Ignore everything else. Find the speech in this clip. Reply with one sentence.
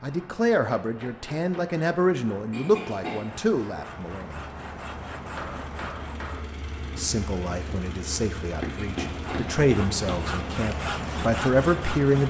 The speech can be heard from 0.0 to 4.4 s and from 7.0 to 12.2 s.